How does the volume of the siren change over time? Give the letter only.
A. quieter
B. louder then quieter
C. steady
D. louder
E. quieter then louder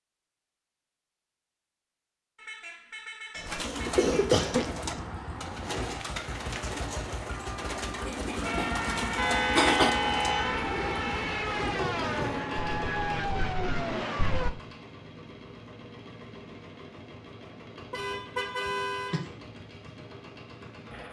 C.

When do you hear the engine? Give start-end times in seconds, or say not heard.
3.5-21.0.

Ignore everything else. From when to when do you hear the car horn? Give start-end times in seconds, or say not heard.
2.4-4.3, 9.2-10.7, 17.9-19.2.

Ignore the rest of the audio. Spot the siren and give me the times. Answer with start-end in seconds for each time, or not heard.
8.4-14.5.